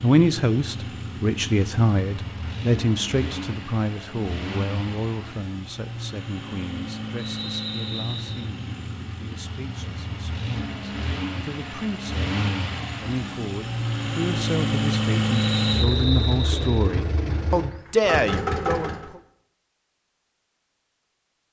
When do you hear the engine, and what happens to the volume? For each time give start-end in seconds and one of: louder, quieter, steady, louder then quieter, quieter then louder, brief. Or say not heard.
0.0-19.1 louder.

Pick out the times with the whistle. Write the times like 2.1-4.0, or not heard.
7.2-8.4, 15.3-16.8.